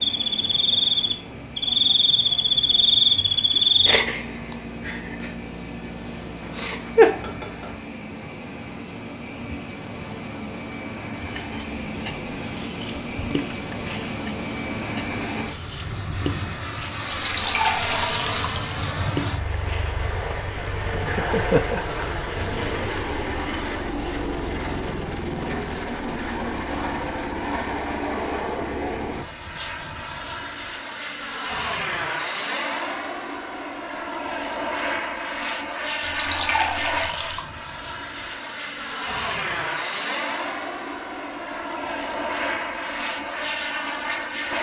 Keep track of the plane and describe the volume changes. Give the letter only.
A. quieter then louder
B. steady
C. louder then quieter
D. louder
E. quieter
D.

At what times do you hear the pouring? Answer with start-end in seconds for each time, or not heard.
17.1-18.6, 36.0-37.5.